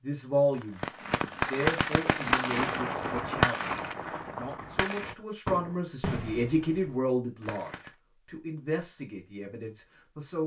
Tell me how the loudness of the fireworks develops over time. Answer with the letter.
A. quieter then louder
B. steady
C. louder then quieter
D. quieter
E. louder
D.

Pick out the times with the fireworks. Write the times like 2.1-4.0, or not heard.
0.6-7.9.